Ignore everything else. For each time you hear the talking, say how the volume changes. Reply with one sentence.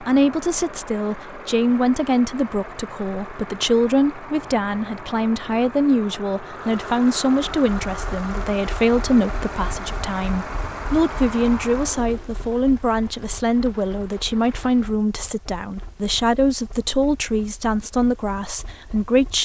You can hear the talking from 0.0 to 19.4 s, at a steady volume.